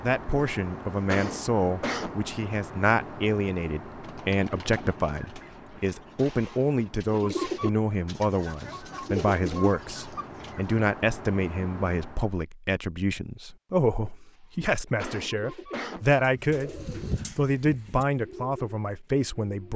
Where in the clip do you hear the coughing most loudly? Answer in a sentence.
The loudest moment of the coughing is at 2 seconds.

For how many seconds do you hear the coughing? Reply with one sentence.
The coughing can be heard for 2 seconds in total.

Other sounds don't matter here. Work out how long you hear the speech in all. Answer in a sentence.
You can hear the speech for 20 seconds altogether.